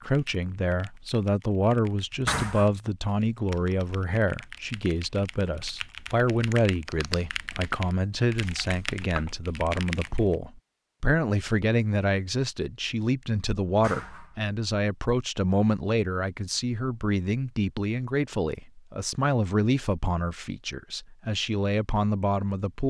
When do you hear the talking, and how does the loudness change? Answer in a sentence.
The talking can be heard from 0.0 to 22.8 s, at a steady volume.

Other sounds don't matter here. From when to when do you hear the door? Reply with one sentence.
You can hear the door from 2.2 to 2.7 s and from 13.8 to 14.4 s.